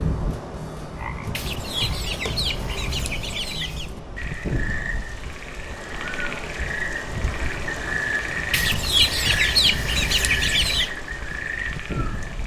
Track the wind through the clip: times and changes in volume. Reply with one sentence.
The wind can be heard from 0.0 to 12.4 s, at a steady volume.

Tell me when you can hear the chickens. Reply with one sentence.
The chickens can be heard from 1.3 to 3.9 s and from 8.5 to 10.9 s.